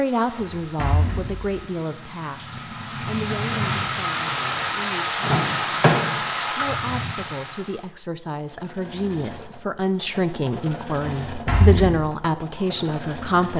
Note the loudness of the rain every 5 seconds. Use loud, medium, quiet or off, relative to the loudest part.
loud, loud, off.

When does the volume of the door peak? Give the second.
6 s.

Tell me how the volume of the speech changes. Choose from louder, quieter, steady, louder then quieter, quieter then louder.
quieter then louder.